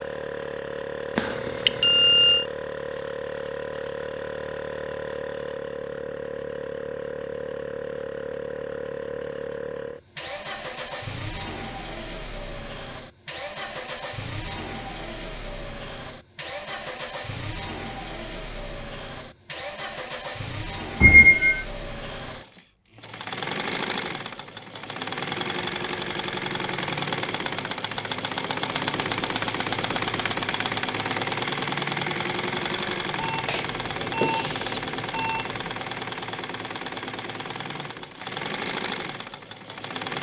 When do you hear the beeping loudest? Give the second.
2 s.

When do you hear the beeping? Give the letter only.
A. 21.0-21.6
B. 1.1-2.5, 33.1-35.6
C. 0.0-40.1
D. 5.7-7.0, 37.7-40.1
B.